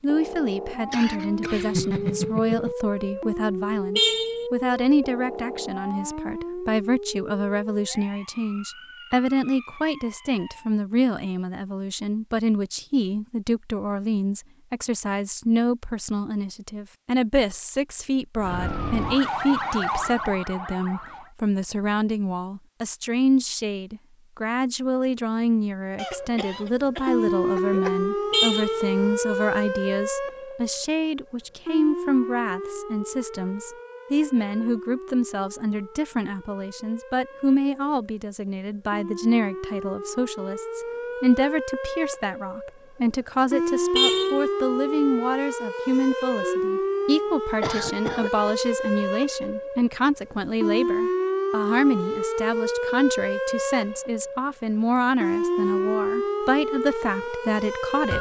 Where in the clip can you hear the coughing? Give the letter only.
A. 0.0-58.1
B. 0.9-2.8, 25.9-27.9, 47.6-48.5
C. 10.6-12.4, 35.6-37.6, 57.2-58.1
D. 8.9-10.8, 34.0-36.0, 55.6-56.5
B.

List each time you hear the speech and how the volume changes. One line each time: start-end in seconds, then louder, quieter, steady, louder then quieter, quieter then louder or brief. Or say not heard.
0.0-58.1 steady.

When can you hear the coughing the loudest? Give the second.
2 s.